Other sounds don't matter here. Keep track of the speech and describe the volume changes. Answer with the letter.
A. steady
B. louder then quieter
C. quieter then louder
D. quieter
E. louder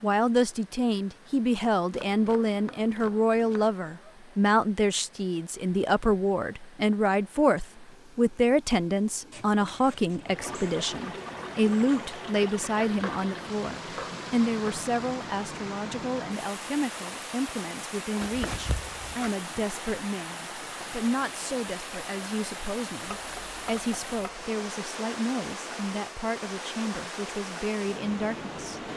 D.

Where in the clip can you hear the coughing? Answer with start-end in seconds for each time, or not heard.
not heard.